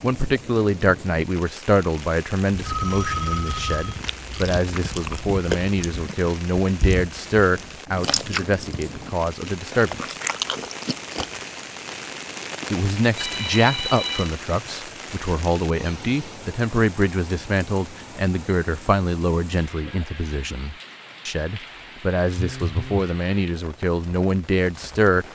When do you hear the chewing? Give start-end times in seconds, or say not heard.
3.8-11.4.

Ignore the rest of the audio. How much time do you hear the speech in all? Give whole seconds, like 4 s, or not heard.
23 s.